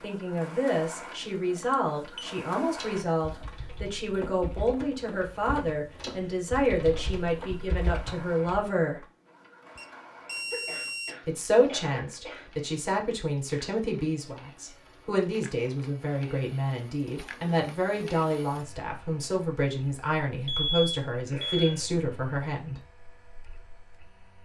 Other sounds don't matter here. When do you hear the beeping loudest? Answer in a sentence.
The volume of the beeping peaks at 21 seconds.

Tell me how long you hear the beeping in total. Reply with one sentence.
You can hear the beeping for 3 seconds altogether.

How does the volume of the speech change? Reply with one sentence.
The loudness of the speech stays about the same.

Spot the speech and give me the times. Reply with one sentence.
The speech can be heard from 0.0 to 9.1 s and from 11.2 to 22.8 s.